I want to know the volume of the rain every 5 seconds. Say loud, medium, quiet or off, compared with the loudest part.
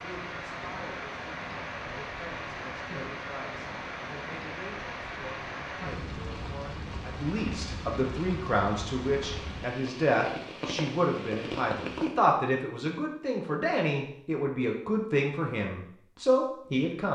loud, loud, loud, off.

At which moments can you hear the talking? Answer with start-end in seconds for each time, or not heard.
0.0-17.1.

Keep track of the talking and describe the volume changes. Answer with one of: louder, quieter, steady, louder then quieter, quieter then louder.
louder.